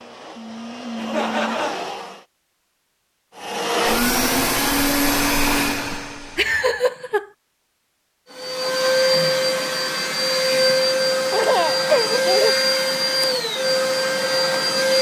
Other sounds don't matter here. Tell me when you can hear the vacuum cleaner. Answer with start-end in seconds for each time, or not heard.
0.0-2.2, 3.4-6.8, 8.3-14.9.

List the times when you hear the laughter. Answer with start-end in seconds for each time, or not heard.
0.9-1.9, 5.9-7.2, 11.3-12.6.